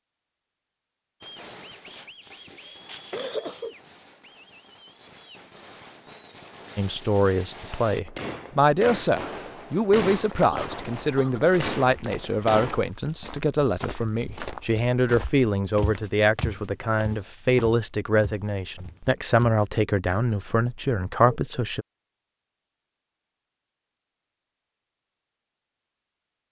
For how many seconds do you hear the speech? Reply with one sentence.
You can hear the speech for 15 seconds altogether.